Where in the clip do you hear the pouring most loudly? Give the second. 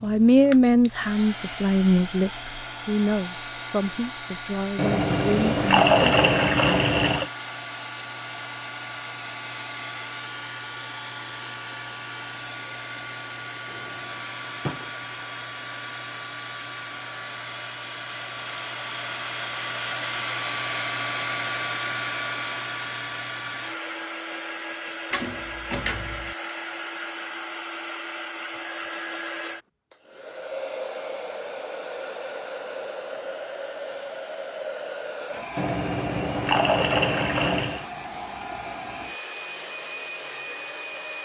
6 s.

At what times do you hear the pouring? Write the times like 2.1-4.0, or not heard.
4.8-7.3, 35.5-37.9.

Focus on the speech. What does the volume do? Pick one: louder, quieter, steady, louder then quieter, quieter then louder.
quieter.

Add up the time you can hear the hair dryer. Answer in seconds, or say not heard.
41 s.